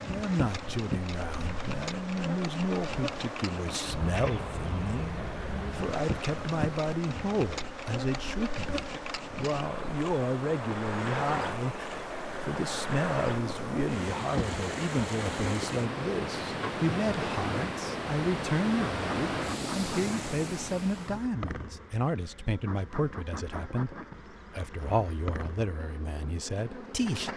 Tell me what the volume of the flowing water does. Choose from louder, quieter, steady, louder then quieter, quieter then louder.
louder.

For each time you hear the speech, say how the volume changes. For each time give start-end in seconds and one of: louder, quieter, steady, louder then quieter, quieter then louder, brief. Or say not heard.
0.0-27.3 steady.